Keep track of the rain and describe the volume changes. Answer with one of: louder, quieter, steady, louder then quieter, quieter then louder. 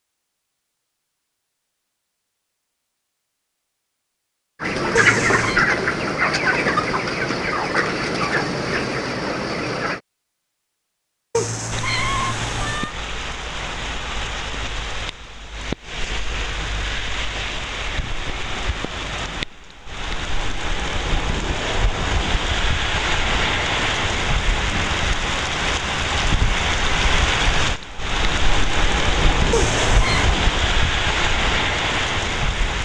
louder.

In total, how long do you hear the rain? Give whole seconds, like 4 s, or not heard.
21 s.